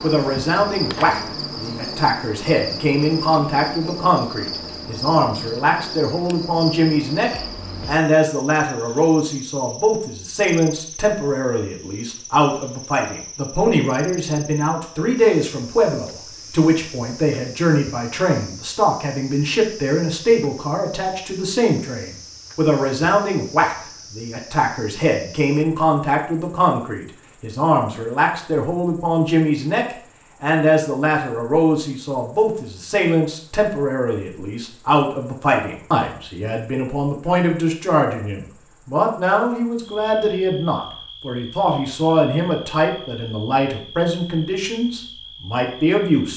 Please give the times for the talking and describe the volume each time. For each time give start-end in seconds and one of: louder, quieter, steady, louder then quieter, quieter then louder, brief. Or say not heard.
0.0-46.3 steady.